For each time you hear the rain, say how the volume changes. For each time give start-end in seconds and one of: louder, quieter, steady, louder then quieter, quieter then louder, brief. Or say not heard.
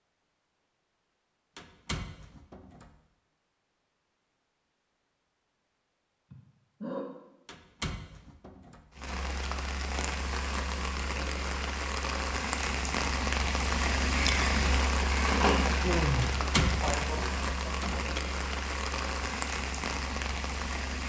8.9-21.0 louder then quieter.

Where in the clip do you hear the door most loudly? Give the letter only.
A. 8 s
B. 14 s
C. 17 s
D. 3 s
C.